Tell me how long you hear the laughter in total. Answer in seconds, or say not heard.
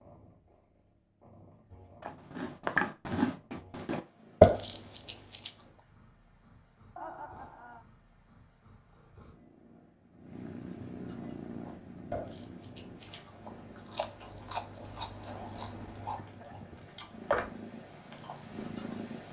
2 s.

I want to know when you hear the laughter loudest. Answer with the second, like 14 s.
7 s.